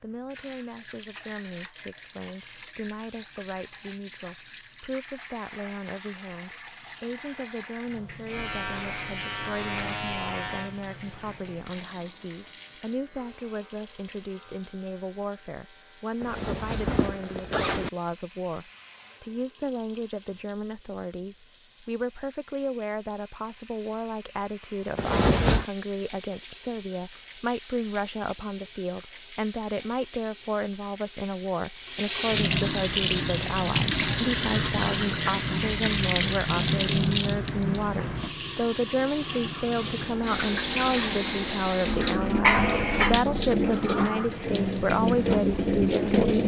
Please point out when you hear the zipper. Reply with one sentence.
The zipper can be heard from 16.2 to 17.9 s and from 24.9 to 25.6 s.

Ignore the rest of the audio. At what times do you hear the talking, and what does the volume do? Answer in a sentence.
The talking can be heard from 0.0 to 46.4 s, getting louder.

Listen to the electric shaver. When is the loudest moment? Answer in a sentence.
The volume of the electric shaver peaks at 10 seconds.